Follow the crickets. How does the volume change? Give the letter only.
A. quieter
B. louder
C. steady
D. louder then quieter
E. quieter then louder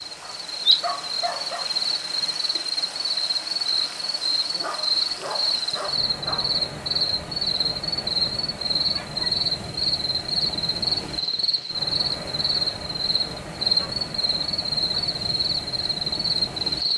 C.